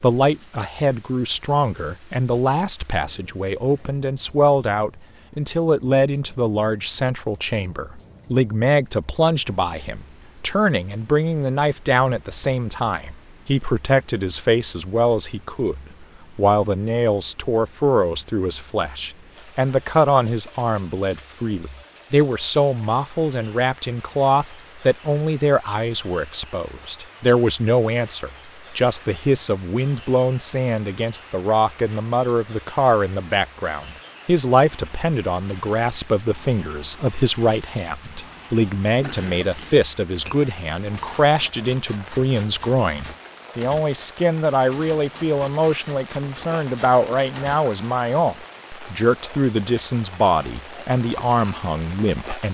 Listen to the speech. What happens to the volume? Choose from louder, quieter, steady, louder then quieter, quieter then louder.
steady.